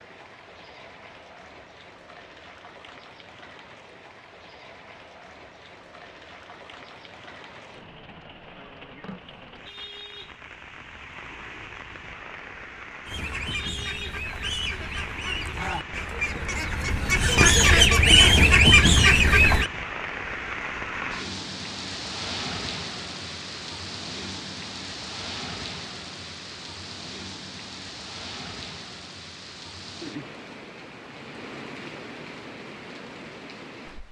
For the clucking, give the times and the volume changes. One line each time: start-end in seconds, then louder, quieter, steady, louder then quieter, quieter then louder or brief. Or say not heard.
13.1-19.7 louder.